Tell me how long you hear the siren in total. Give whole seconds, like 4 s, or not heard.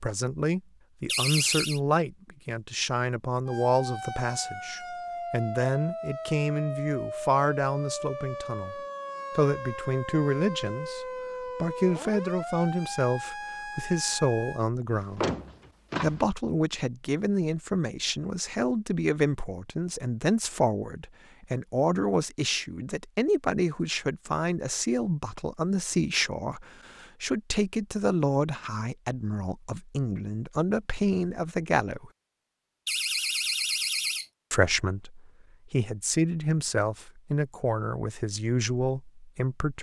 11 s.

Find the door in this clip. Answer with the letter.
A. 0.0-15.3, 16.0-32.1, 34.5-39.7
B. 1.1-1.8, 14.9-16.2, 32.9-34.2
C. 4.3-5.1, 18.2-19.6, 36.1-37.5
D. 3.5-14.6
B.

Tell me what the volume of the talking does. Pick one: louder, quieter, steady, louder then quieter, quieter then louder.
steady.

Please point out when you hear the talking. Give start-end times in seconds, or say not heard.
0.0-15.3, 16.0-32.1, 34.5-39.7.